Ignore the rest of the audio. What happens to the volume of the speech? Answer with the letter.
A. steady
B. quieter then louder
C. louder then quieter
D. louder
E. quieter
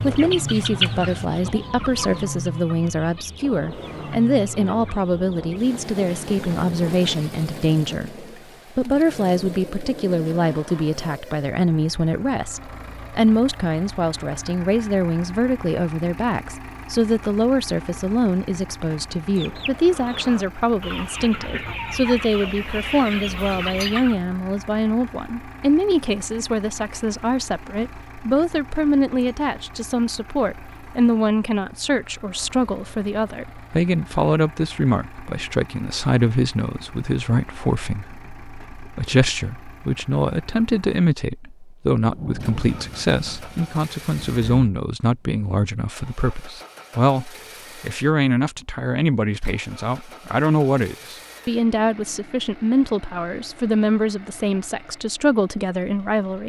A.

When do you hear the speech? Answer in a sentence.
The speech can be heard from 0.0 to 56.4 s.